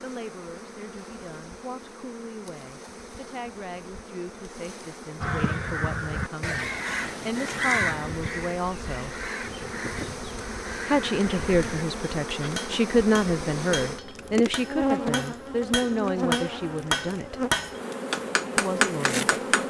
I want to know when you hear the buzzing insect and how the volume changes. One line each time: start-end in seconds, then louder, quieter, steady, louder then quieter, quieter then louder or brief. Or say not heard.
0.0-19.6 louder.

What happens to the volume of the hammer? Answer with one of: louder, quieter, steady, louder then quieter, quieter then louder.
louder.